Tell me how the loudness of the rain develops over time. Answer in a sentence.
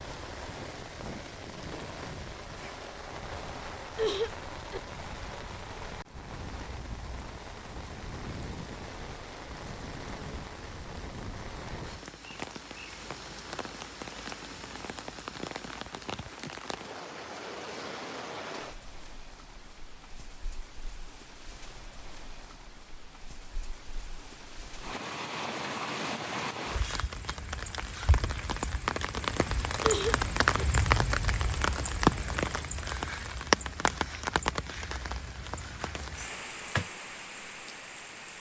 The loudness of the rain goes up.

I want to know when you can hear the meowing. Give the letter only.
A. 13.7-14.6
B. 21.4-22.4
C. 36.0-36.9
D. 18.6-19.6
C.